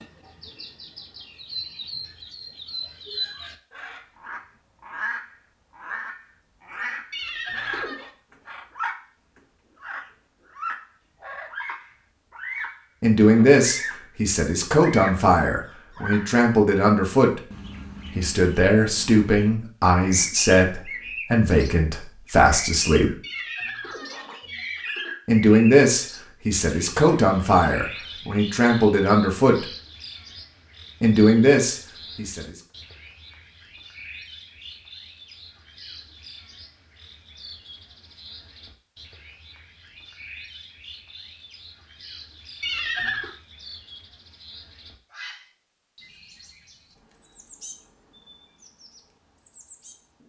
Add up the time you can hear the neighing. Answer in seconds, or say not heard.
4 s.